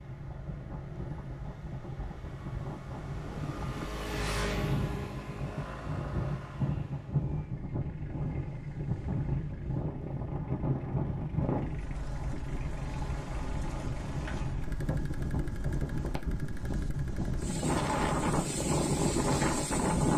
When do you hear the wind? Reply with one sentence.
You can hear the wind from 0.0 to 20.1 s.